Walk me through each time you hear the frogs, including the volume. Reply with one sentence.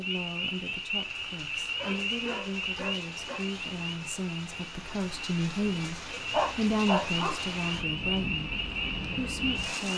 You can hear the frogs from 0.0 to 9.9 s, getting quieter then louder.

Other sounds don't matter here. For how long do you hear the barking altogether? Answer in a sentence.
The barking can be heard for 3 seconds in total.